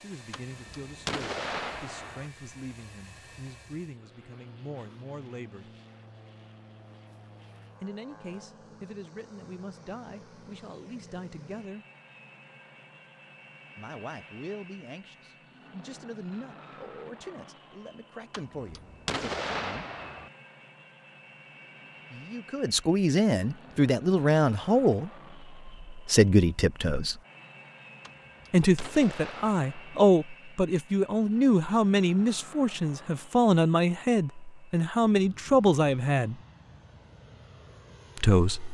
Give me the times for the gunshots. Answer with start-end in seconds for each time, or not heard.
0.3-2.3, 18.3-20.3, 28.0-30.0.